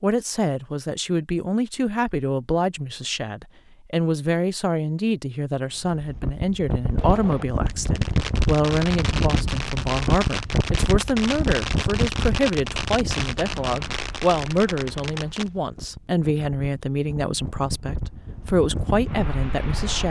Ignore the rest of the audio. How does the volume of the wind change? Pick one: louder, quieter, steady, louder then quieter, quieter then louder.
quieter then louder.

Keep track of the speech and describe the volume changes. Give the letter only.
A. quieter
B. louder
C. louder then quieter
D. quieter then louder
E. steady
E.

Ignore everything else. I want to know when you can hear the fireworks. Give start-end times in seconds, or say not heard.
7.0-15.5.